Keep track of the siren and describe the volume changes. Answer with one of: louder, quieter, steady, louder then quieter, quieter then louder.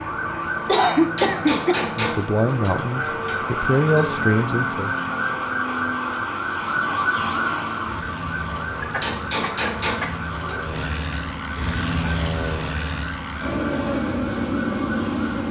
quieter.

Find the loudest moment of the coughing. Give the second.
1 s.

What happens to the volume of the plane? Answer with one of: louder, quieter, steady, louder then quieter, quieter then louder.
louder.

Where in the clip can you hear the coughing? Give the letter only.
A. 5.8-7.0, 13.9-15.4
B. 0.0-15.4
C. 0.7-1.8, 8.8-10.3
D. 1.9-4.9
C.